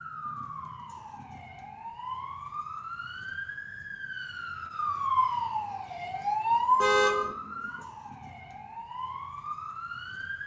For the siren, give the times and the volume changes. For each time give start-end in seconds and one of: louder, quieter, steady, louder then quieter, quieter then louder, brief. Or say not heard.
0.0-10.4 louder then quieter.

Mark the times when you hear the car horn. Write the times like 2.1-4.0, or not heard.
6.8-7.3.